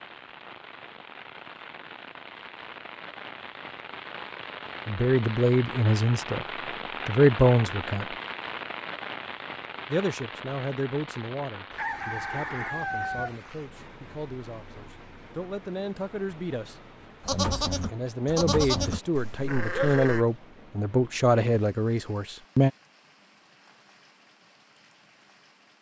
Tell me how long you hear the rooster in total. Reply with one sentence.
The rooster can be heard for 2 seconds in total.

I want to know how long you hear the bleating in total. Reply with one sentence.
The bleating can be heard for 3 seconds in total.